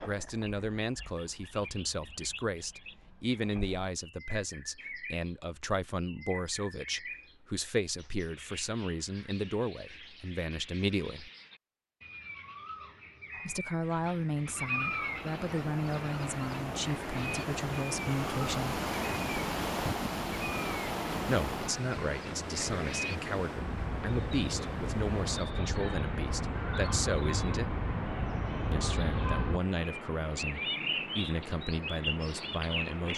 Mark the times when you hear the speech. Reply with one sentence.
You can hear the speech from 0.1 to 11.3 s, from 13.4 to 18.8 s, from 21.2 to 27.8 s and from 28.7 to 33.1 s.